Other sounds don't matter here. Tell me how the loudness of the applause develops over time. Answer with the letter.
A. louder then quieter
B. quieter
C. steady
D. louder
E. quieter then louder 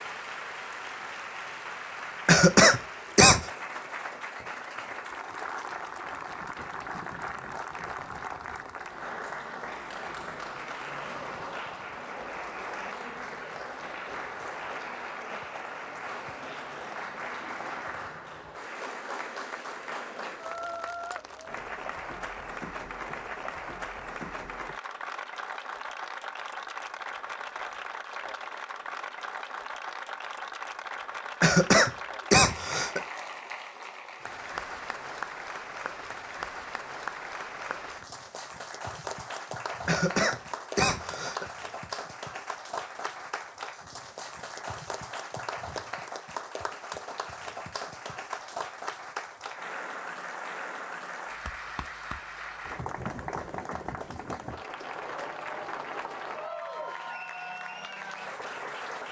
C.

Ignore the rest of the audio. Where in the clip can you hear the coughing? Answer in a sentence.
You can hear the coughing from 2.2 to 3.5 s, from 31.4 to 33.0 s and from 39.9 to 41.5 s.